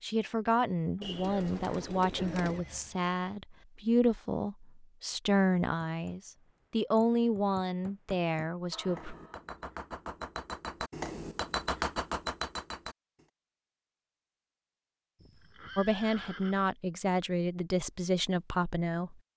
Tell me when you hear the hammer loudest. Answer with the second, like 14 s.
12 s.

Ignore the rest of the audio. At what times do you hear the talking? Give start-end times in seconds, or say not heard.
0.0-9.2, 15.8-19.1.